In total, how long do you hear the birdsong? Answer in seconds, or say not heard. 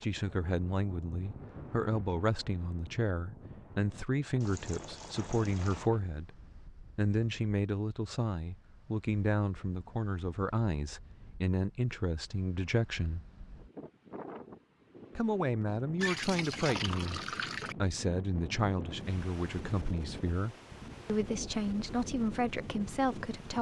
not heard.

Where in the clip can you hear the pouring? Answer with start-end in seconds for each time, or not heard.
4.4-5.9, 15.9-17.8.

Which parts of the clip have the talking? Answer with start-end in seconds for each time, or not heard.
0.0-6.3, 7.0-13.2, 15.2-17.2, 17.8-23.5.